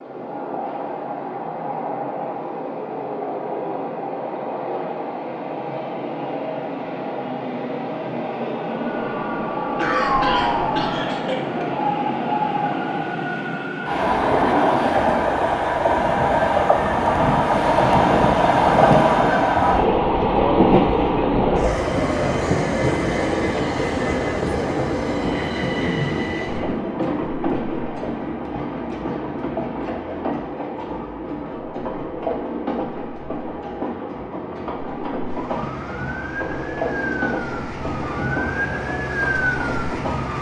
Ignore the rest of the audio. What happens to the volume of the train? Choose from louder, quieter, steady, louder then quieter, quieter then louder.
louder then quieter.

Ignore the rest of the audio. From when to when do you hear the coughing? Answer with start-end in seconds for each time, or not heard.
9.8-11.7, 25.4-26.6.